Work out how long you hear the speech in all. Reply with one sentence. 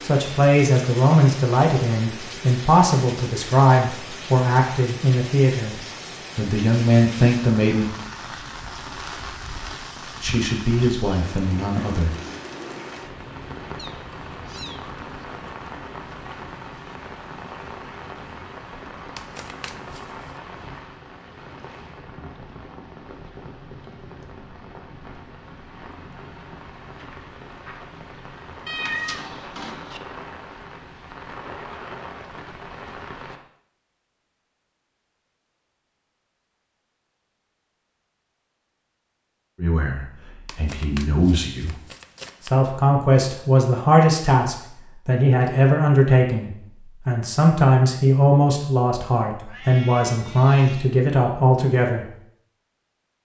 You can hear the speech for 22 seconds altogether.